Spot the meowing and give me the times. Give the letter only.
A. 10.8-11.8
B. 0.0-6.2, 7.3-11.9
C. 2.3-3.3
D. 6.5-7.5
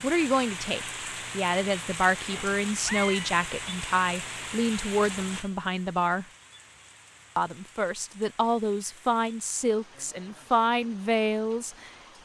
C.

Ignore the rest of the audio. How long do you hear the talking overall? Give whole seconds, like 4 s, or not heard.
11 s.